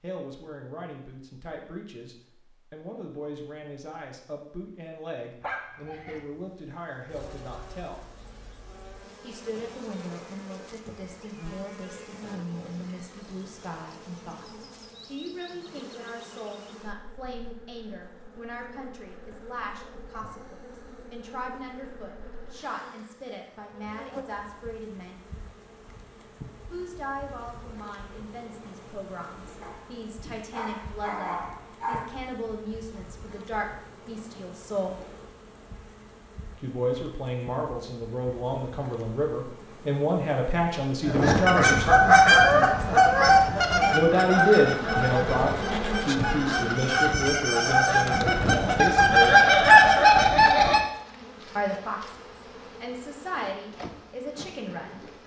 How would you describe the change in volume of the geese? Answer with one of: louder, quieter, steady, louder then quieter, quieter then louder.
quieter then louder.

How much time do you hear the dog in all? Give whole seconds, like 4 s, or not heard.
3 s.